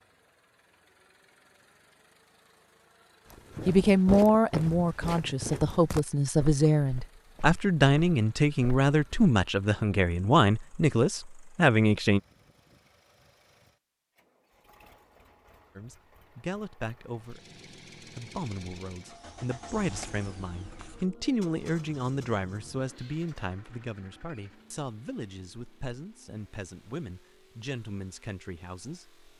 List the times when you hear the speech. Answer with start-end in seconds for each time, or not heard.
3.6-12.2, 15.8-29.2.